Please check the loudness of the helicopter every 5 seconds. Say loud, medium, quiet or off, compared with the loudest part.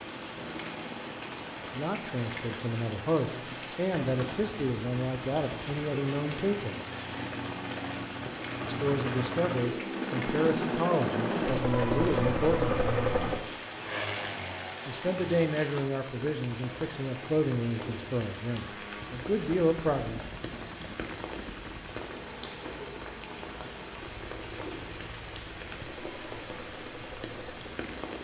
quiet, medium, loud, quiet, quiet, quiet.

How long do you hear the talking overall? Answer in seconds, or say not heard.
15 s.